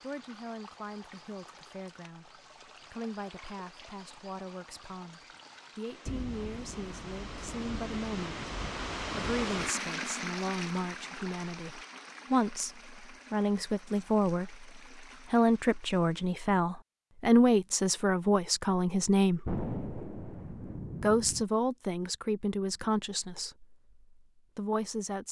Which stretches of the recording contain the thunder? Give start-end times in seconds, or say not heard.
6.0-9.7, 19.4-21.4.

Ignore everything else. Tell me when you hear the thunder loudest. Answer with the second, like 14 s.
20 s.